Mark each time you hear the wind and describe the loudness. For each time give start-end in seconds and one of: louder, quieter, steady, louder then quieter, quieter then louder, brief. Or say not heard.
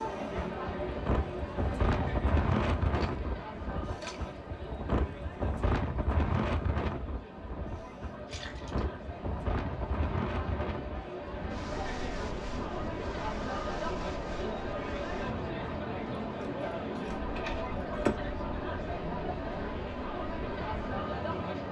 0.0-21.6 quieter.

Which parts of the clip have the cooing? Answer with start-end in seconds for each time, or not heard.
not heard.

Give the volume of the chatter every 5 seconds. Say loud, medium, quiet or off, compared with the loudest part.
loud, medium, loud, loud, loud.